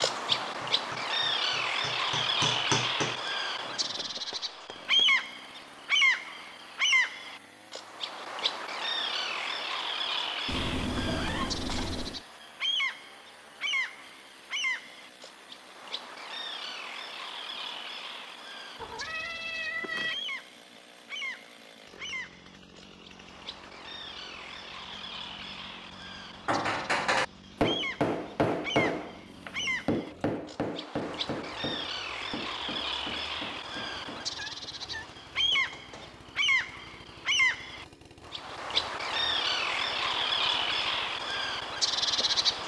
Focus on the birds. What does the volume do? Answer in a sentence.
The volume of the birds goes down, then up.